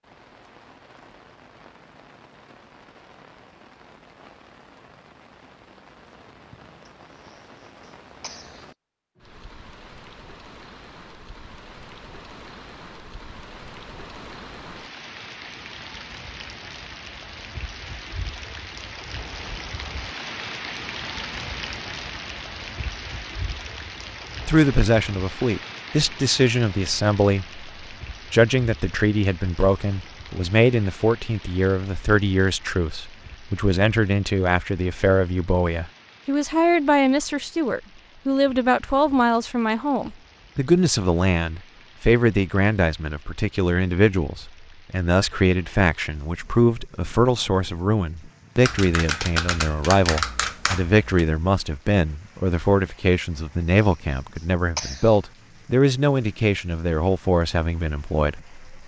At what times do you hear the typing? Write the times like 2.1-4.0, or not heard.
48.6-51.2.